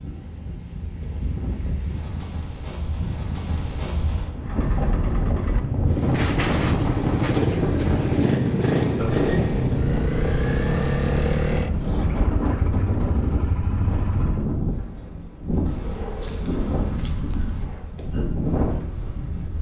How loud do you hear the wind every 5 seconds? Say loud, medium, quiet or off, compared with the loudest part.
medium, loud, loud, loud.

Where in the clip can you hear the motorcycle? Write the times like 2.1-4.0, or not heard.
4.3-14.4.